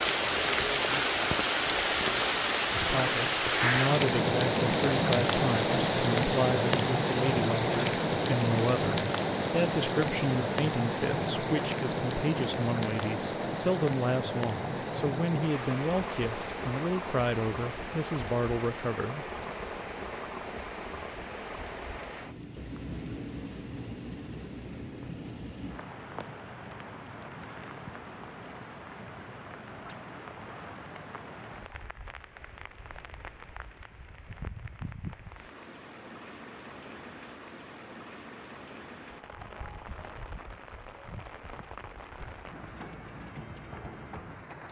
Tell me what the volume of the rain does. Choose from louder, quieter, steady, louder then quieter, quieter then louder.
quieter.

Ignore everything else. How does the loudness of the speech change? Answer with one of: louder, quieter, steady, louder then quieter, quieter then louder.
steady.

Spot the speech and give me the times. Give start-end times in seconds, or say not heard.
2.8-19.5.